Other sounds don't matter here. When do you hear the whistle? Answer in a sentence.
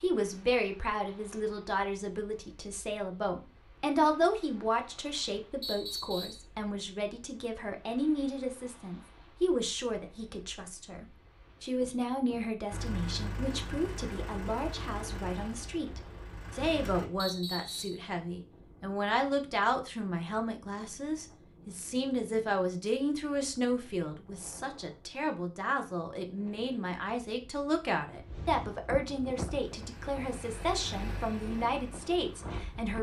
You can hear the whistle from 5.6 to 6.5 s and from 17.1 to 18.1 s.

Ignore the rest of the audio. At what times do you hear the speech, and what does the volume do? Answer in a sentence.
The speech can be heard from 0.0 to 32.9 s, at a steady volume.